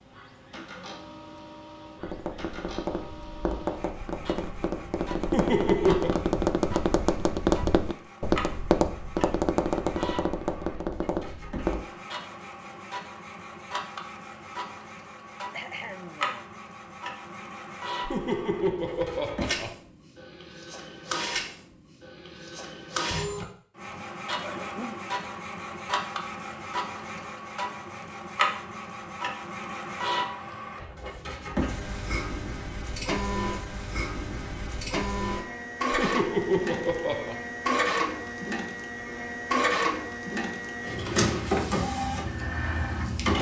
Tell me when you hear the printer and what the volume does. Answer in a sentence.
The printer can be heard from 0.0 to 43.3 s, getting louder.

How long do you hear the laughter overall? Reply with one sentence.
The laughter can be heard for 4 seconds in total.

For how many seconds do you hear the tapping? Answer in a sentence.
The tapping can be heard for 10 seconds in total.